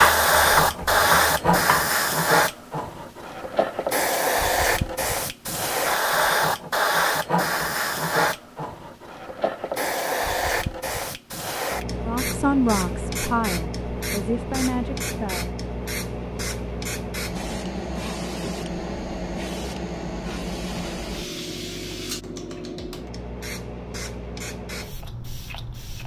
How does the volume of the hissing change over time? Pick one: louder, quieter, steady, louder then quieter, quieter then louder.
quieter.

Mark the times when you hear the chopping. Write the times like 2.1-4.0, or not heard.
0.0-1.9.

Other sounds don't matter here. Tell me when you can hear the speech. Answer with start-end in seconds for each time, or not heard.
12.1-15.6.